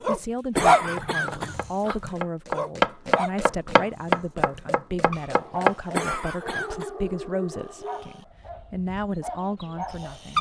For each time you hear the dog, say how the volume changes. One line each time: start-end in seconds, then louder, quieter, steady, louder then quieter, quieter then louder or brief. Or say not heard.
0.0-10.3 quieter.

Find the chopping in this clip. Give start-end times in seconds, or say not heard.
0.9-6.0.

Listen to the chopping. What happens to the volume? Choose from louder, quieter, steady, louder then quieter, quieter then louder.
louder then quieter.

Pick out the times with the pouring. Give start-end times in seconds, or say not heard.
not heard.